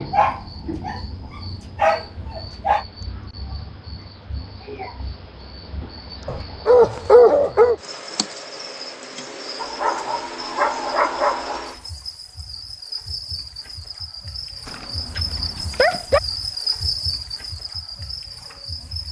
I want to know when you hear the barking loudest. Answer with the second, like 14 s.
7 s.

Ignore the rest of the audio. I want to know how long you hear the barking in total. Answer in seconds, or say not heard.
8 s.